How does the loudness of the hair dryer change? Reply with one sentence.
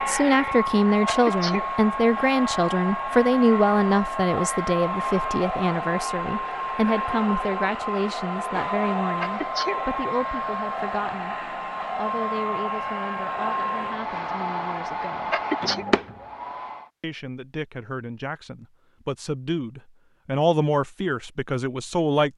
The volume of the hair dryer stays about the same.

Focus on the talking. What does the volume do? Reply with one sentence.
The volume of the talking goes down, then up.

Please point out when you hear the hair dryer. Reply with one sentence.
You can hear the hair dryer from 0.0 to 16.9 s.